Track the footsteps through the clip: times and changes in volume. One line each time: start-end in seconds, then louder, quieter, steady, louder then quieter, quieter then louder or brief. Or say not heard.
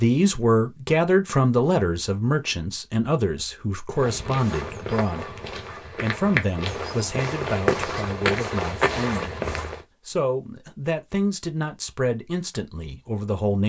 3.9-9.8 louder.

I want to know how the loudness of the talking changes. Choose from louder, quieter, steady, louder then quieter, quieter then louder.
quieter.